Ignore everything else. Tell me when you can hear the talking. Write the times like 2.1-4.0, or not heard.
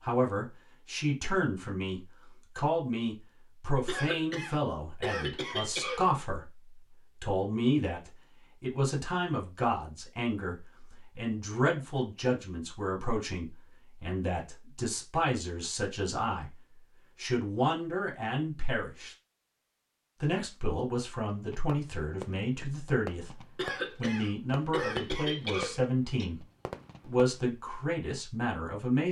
0.0-19.1, 20.2-29.0.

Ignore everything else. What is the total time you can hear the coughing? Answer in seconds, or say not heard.
5 s.